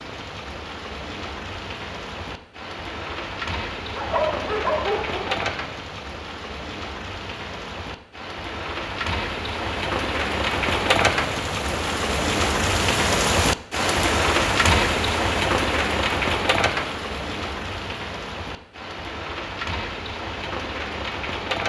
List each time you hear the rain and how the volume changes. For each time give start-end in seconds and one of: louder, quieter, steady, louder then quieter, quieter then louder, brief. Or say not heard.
0.0-21.6 louder then quieter.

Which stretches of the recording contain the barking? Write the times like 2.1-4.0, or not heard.
3.9-5.4.